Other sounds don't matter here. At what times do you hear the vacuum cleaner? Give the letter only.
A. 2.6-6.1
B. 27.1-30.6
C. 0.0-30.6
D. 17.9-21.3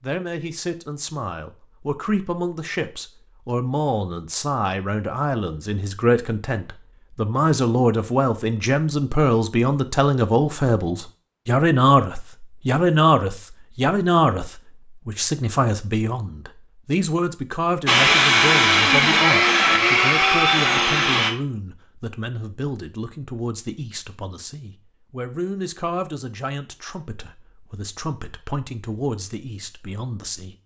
D.